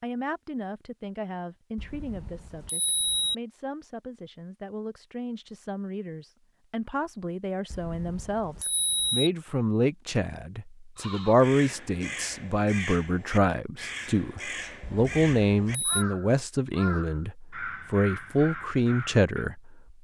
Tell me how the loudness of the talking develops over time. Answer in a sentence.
The loudness of the talking goes up.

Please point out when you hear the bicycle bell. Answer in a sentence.
The bicycle bell can be heard from 1.8 to 3.4 s, from 7.7 to 9.3 s and from 14.8 to 16.1 s.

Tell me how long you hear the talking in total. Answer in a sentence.
You can hear the talking for 20 seconds altogether.